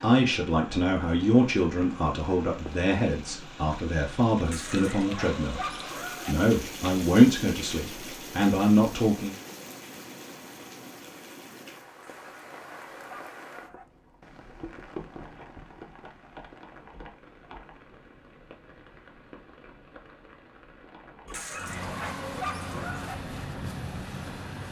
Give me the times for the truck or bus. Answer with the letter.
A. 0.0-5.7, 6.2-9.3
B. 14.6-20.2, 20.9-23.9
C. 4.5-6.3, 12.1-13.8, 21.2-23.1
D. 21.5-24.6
D.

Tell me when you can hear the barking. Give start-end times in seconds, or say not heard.
4.5-6.3, 12.1-13.8, 21.2-23.1.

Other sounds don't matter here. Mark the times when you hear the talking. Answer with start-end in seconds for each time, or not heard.
0.0-5.7, 6.2-9.3.